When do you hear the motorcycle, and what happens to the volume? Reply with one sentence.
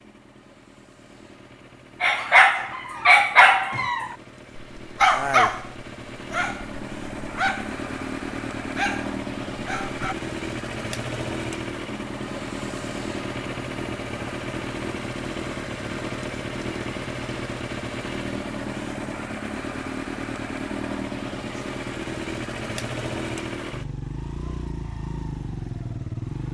You can hear the motorcycle from 0.0 to 26.4 s, getting louder.